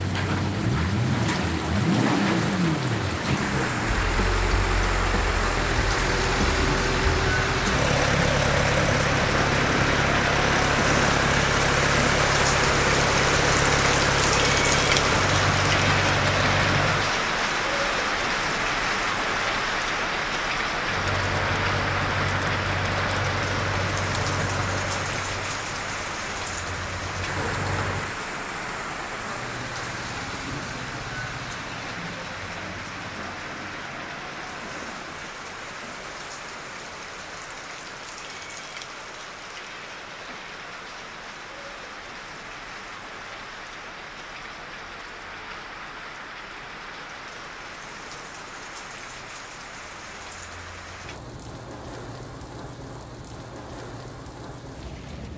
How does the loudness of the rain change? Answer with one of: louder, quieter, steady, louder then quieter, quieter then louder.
quieter.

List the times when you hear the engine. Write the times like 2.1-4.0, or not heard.
0.0-17.1, 20.8-28.2.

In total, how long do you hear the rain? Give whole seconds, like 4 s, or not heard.
55 s.